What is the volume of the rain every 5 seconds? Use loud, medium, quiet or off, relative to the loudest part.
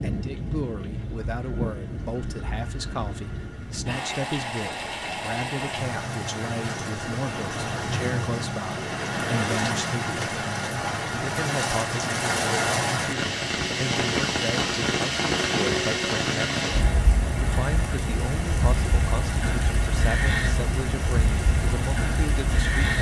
medium, loud, loud, loud, loud.